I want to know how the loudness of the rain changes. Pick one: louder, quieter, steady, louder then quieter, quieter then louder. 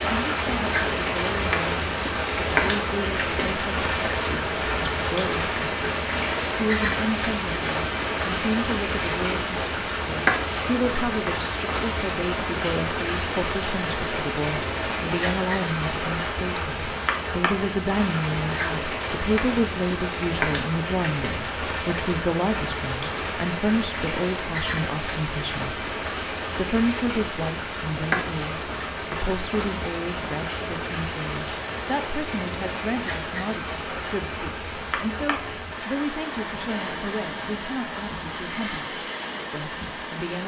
quieter.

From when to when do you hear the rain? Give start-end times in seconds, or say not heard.
0.0-40.4.